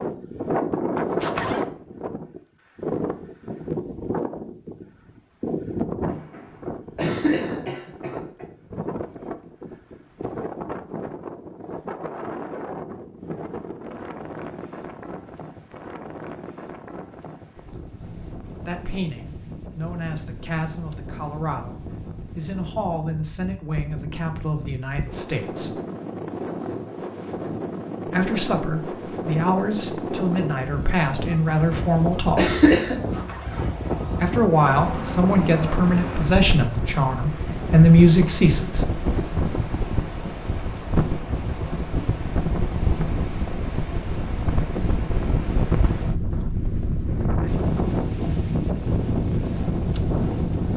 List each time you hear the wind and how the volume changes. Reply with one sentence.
You can hear the wind from 0.0 to 50.7 s, getting quieter then louder.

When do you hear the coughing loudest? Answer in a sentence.
The volume of the coughing peaks at 33 seconds.